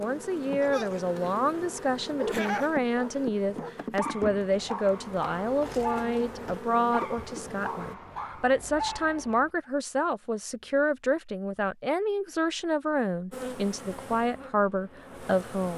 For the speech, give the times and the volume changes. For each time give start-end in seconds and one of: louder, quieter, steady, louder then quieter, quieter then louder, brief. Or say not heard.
0.0-15.7 steady.